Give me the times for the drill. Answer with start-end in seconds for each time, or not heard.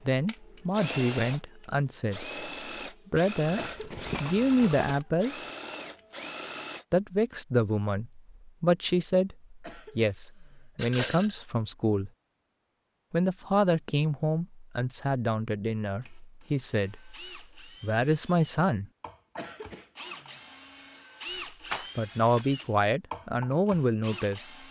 0.0-6.8, 16.0-24.6.